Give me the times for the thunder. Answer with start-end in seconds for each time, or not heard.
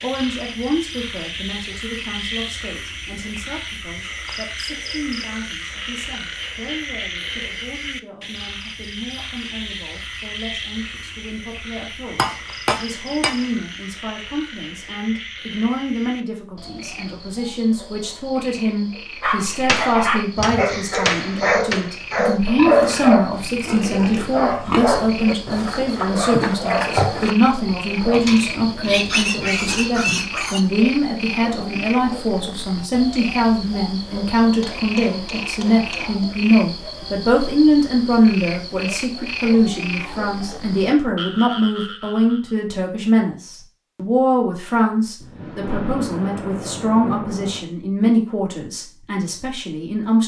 45.1-47.7.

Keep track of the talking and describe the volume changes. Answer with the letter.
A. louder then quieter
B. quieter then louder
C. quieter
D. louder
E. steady
D.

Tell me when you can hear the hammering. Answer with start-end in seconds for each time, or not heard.
12.1-13.5, 19.6-21.9, 34.6-36.2.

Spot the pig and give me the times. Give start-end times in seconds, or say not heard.
22.6-30.6.